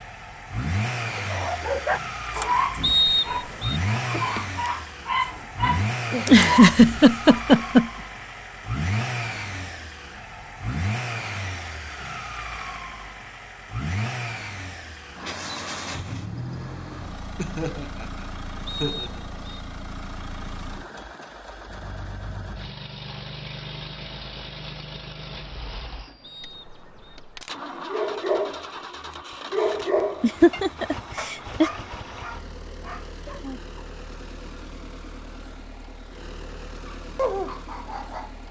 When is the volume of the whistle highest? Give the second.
3 s.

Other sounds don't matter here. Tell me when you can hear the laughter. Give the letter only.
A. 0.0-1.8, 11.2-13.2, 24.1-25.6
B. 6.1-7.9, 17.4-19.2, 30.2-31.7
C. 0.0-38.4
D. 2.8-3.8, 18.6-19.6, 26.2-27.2
B.